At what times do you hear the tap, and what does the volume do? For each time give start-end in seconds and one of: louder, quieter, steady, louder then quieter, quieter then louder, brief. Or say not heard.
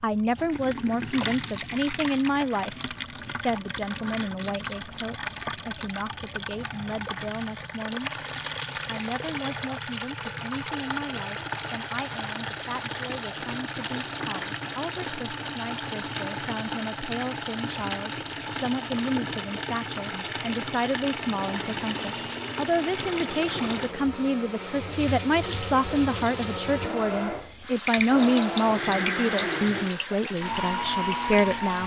0.0-31.8 steady.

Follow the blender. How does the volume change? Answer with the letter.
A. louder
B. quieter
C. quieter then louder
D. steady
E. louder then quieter
A.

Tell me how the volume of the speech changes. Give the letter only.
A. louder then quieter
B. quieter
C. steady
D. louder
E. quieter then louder
E.